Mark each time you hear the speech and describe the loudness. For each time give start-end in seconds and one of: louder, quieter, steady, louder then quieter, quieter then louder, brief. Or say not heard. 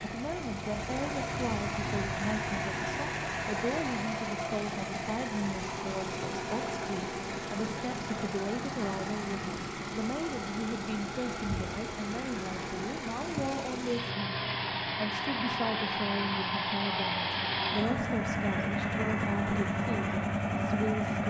0.0-21.2 steady.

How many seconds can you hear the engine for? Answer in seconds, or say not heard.
21 s.